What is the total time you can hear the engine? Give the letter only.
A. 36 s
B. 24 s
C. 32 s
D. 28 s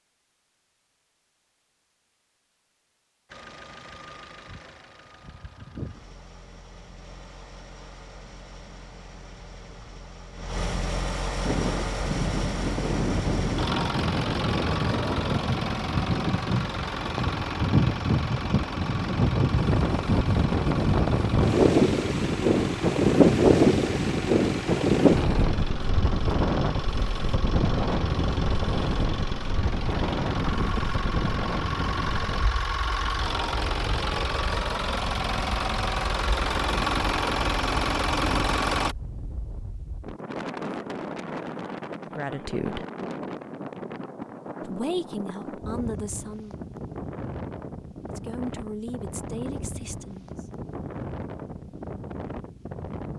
A.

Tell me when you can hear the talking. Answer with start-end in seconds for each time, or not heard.
42.1-42.8, 44.6-46.5, 48.1-50.5.